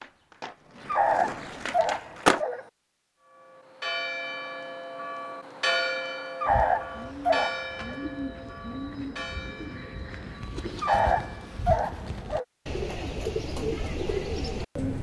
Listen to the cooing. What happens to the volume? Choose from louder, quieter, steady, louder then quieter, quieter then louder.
louder.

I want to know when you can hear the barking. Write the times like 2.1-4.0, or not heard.
0.8-2.6, 6.4-8.0, 10.8-12.4.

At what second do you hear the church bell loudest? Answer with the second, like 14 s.
6 s.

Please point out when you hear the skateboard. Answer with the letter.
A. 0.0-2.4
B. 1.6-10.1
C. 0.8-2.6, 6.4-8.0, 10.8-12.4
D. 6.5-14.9
A.